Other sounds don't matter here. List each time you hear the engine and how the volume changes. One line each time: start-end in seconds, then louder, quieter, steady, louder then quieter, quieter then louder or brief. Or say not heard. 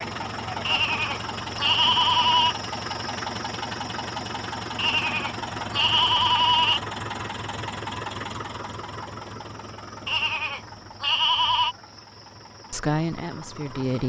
0.0-14.0 quieter.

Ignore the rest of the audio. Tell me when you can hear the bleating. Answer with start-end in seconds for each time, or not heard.
0.7-2.5, 4.8-6.8, 10.1-11.8.